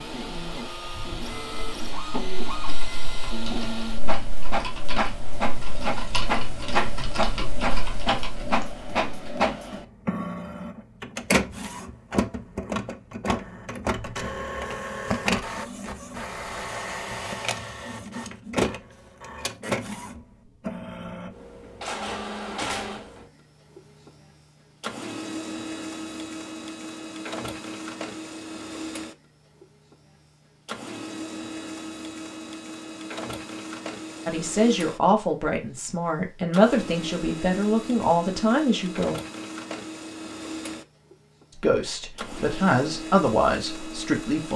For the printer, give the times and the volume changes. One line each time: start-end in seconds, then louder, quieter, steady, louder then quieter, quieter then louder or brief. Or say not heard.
0.0-44.5 quieter.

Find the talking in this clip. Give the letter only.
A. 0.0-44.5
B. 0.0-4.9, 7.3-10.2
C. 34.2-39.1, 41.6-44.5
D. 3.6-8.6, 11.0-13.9
C.